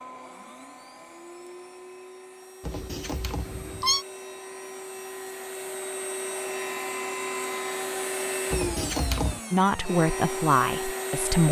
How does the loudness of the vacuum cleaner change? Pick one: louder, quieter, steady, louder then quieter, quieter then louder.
louder.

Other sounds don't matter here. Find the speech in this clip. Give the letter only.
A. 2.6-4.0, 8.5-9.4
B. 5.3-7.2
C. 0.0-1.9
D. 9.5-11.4
D.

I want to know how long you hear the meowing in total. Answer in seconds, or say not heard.
2 s.